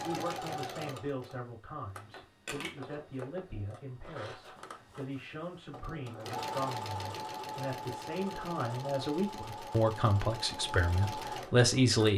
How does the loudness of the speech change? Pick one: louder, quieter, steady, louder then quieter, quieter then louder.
louder.